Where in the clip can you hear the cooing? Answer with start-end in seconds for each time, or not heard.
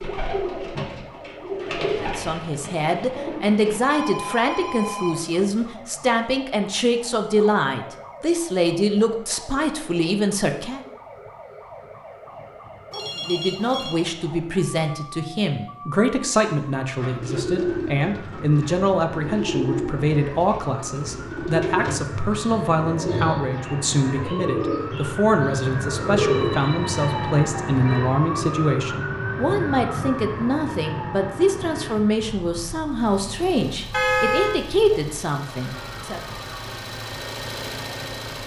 0.0-3.8, 16.9-26.7.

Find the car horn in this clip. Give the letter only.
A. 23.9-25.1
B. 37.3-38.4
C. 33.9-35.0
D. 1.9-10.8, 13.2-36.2
C.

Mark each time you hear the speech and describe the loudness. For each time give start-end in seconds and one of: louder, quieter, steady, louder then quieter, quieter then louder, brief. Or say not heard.
1.9-10.8 steady
13.2-36.2 steady.